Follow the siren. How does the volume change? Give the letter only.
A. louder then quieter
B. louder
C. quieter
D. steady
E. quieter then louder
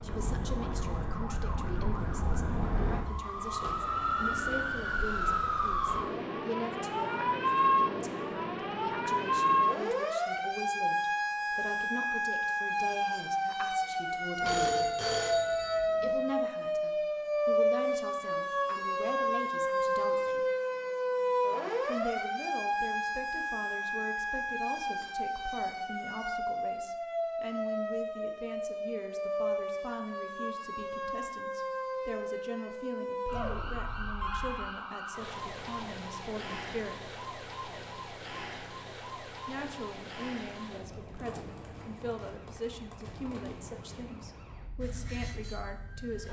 C.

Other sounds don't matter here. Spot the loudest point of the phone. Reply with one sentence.
The volume of the phone peaks at 15 seconds.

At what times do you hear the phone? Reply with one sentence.
You can hear the phone from 14.4 to 16.2 s and from 33.3 to 34.8 s.